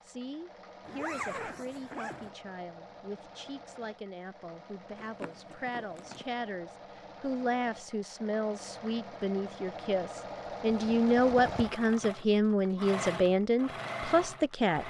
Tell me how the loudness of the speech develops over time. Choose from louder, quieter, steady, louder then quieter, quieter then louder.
louder.